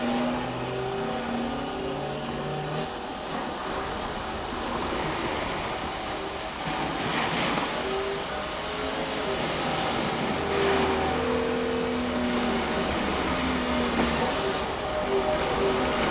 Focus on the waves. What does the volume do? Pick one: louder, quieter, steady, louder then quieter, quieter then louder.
louder.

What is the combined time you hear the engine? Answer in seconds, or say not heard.
16 s.